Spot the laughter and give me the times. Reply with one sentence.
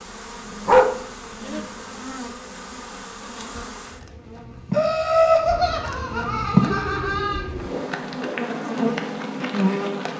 The laughter can be heard from 4.7 to 7.4 s.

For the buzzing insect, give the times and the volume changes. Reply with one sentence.
You can hear the buzzing insect from 0.0 to 10.1 s, getting louder.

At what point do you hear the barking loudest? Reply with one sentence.
The volume of the barking peaks at 1 second.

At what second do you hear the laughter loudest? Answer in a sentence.
The volume of the laughter peaks at 5 seconds.